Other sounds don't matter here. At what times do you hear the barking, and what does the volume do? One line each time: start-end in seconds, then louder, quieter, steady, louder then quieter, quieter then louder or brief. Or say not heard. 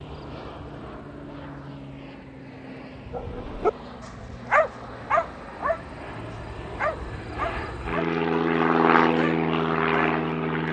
3.1-10.2 quieter.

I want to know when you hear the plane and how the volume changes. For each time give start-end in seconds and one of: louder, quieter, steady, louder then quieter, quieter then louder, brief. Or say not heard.
0.0-10.6 louder.